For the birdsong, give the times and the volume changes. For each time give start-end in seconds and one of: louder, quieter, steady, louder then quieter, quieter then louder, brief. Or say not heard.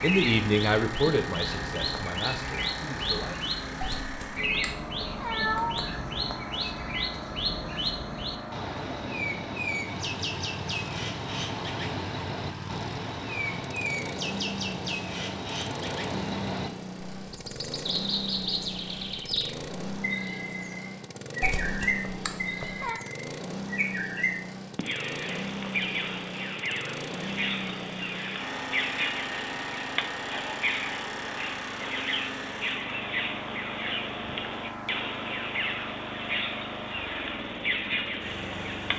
0.0-38.9 steady.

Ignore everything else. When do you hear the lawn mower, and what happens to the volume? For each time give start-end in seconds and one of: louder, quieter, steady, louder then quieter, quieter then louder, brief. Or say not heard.
0.0-38.9 steady.